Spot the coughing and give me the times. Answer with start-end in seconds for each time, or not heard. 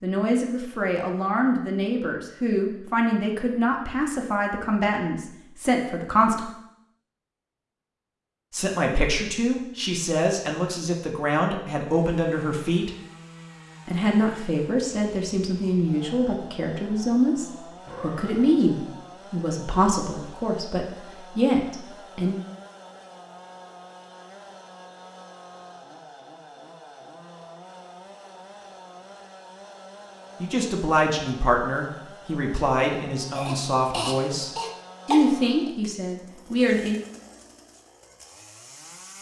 33.3-35.7.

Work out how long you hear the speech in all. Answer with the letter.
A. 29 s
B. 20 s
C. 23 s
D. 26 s
D.